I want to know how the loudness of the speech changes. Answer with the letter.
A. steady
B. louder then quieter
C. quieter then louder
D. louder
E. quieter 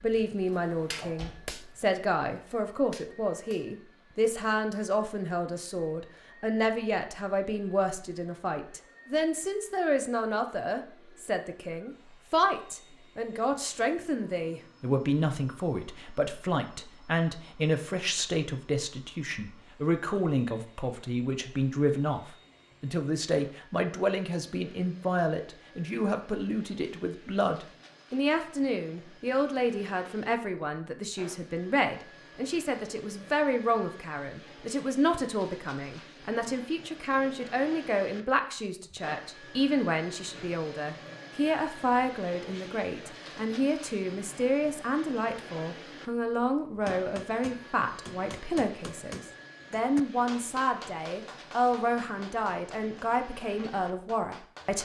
A.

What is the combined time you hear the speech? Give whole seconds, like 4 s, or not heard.
55 s.